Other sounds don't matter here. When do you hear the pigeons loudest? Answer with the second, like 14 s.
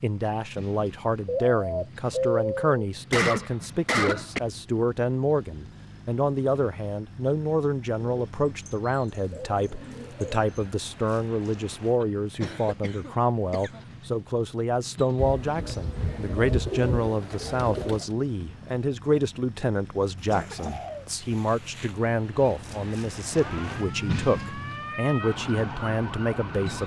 2 s.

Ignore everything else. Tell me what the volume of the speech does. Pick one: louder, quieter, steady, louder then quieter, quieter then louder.
steady.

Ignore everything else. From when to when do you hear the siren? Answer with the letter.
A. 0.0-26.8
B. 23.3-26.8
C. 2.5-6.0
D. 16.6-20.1
B.